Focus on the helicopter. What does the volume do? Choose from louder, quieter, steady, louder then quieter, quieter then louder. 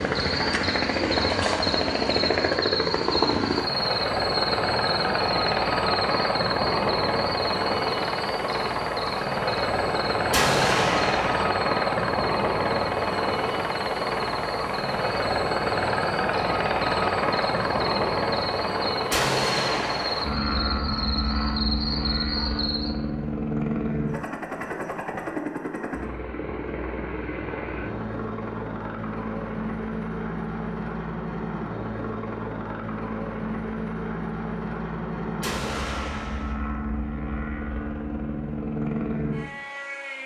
quieter.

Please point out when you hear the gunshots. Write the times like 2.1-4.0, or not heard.
10.3-11.4, 19.1-20.2, 35.4-36.5.